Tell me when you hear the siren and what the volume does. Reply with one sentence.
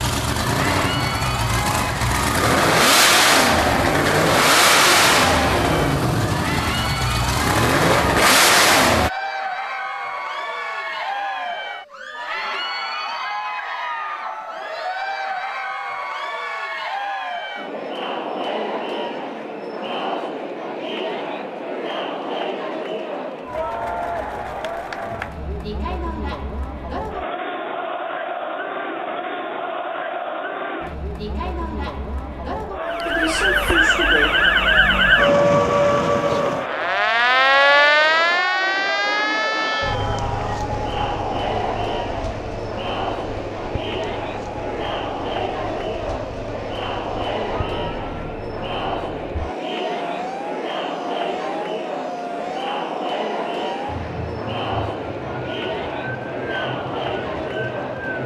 You can hear the siren from 32.8 to 58.2 s, getting quieter.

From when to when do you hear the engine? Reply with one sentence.
The engine can be heard from 0.0 to 9.1 s.